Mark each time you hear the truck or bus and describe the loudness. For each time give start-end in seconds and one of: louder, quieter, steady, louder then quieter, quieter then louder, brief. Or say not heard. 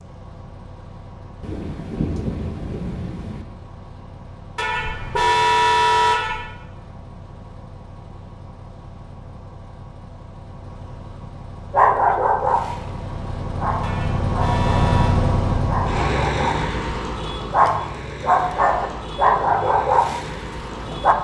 0.0-21.1 louder then quieter.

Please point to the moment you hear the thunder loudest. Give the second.
2 s.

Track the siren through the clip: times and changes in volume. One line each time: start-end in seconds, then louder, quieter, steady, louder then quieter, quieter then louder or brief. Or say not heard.
not heard.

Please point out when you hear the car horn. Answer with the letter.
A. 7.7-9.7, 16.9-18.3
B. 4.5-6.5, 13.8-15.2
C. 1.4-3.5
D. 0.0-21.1
B.